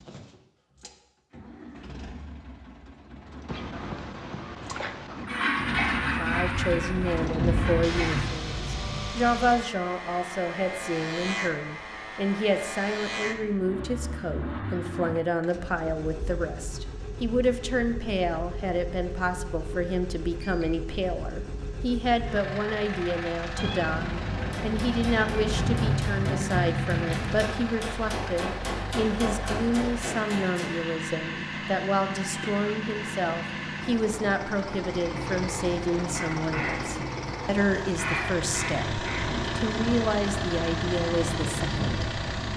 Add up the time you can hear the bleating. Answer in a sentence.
The bleating can't be heard in this clip.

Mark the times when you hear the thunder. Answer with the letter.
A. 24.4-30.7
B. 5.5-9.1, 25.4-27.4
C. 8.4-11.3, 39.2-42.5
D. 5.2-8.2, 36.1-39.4
B.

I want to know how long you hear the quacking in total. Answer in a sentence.
You can hear the quacking for 6 seconds altogether.